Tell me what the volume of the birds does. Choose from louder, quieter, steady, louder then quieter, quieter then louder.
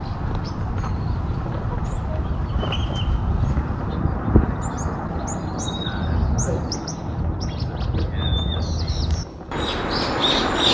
steady.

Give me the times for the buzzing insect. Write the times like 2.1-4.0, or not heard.
not heard.